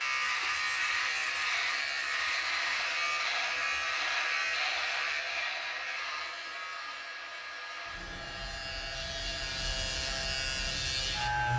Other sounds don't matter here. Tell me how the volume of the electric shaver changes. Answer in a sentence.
The volume of the electric shaver goes down, then up.